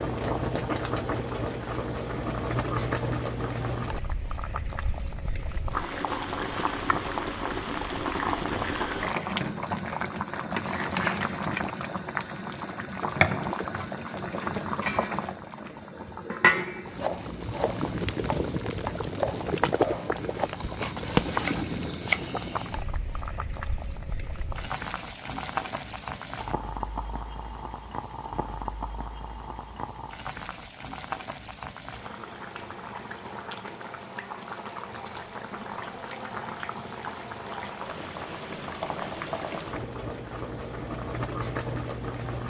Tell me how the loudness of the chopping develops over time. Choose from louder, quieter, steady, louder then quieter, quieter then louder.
louder then quieter.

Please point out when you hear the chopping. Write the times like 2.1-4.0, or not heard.
16.9-22.4.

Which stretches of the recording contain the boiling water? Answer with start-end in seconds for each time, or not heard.
0.0-42.4.